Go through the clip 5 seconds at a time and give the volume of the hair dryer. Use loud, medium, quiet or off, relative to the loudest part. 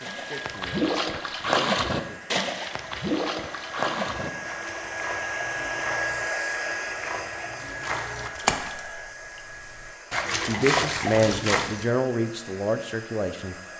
medium, loud, medium.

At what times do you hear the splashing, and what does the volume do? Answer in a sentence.
You can hear the splashing from 0.0 to 11.9 s, getting quieter then louder.